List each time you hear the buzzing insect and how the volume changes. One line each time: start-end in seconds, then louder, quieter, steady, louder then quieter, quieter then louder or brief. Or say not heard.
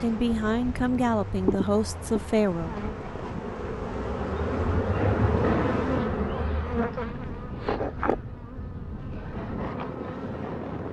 0.0-10.8 louder then quieter.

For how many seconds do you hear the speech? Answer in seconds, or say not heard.
3 s.